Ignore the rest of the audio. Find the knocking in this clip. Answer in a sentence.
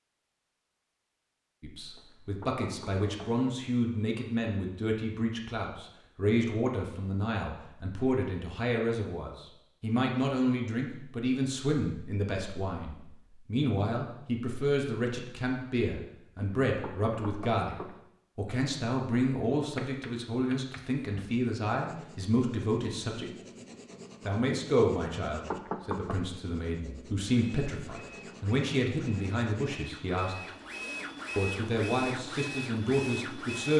The knocking can be heard from 1.9 to 3.5 s, from 16.4 to 18.0 s and from 25.3 to 26.2 s.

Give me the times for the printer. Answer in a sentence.
The printer can be heard from 27.2 to 33.7 s.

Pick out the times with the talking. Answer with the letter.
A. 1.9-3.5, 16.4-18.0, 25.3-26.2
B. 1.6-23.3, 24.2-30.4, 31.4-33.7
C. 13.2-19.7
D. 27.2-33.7
B.